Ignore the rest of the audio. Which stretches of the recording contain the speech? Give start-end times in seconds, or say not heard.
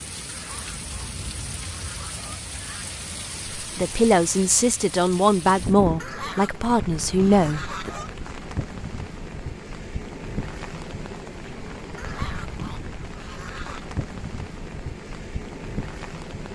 3.6-7.9.